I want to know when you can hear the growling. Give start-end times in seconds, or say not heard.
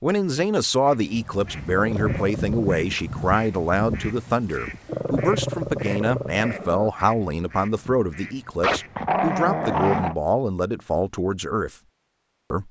1.7-2.7, 4.8-6.9, 8.6-10.2.